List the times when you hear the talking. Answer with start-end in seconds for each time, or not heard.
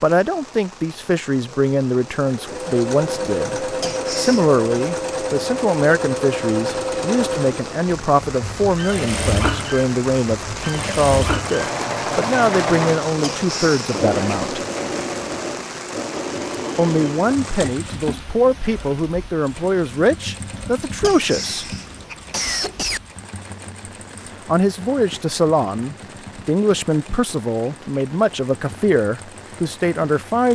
0.0-14.6, 16.8-21.6, 24.2-30.5.